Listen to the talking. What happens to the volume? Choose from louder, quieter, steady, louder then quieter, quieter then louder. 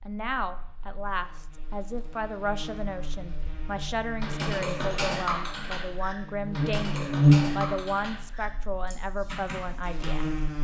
steady.